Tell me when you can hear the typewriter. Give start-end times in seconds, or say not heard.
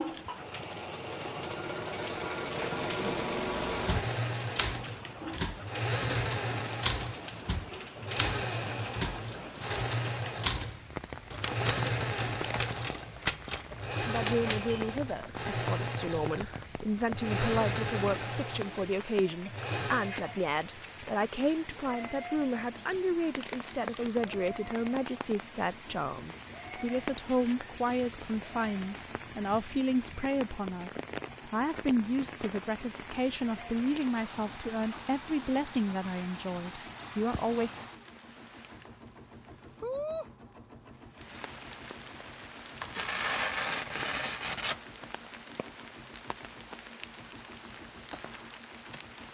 3.2-14.8.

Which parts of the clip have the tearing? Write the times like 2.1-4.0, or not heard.
12.2-12.9, 23.2-24.5, 42.8-44.8.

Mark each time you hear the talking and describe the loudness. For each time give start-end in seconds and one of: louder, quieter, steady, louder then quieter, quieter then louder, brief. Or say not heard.
14.1-37.7 steady.